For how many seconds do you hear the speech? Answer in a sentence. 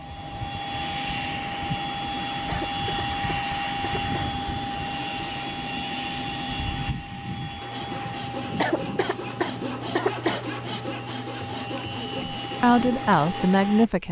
The speech can be heard for 2 seconds in total.